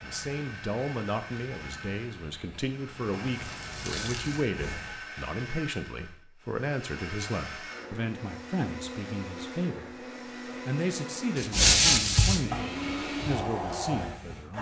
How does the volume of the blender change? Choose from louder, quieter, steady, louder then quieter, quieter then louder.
louder.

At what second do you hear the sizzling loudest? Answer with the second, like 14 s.
12 s.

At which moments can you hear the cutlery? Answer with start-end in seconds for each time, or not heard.
not heard.